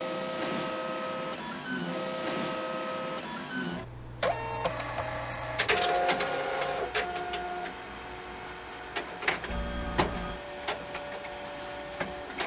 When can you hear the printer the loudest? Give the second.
6 s.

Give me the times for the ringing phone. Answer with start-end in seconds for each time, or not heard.
9.4-10.4.